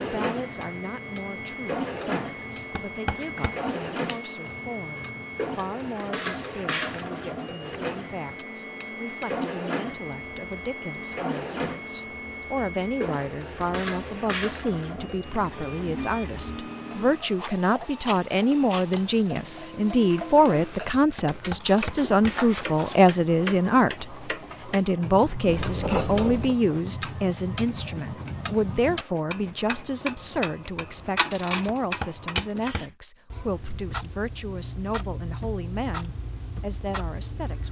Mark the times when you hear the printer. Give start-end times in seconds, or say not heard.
0.0-32.5.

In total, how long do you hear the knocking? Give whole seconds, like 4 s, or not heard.
4 s.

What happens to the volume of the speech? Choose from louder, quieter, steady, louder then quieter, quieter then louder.
louder then quieter.